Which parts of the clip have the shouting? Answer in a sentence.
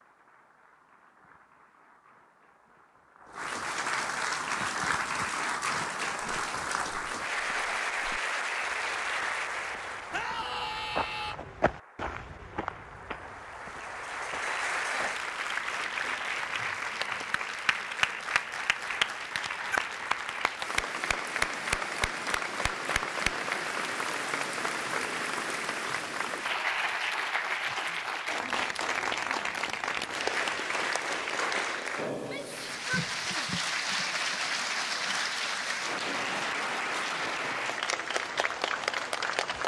The shouting can be heard from 10.1 to 11.3 s and from 32.1 to 33.5 s.